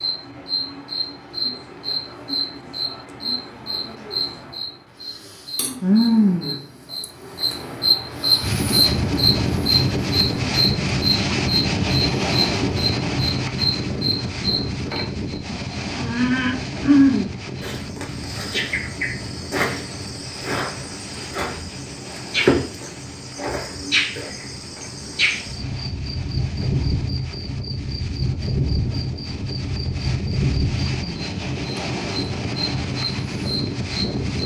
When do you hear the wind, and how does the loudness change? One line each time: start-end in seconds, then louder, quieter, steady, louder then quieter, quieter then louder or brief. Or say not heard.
8.3-34.4 quieter then louder.